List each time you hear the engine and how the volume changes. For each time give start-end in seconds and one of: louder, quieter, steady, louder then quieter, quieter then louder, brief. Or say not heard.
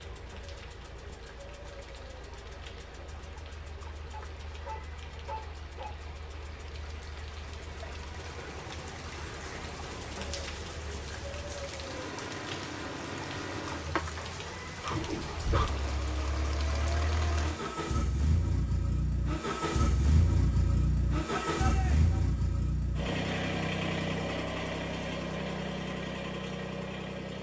0.0-27.3 louder.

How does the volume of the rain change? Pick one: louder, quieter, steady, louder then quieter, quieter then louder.
louder.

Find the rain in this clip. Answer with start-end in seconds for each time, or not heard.
0.0-17.8.